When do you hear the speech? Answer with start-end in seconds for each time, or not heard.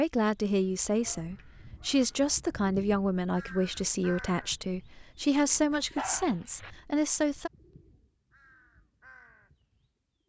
0.0-7.5.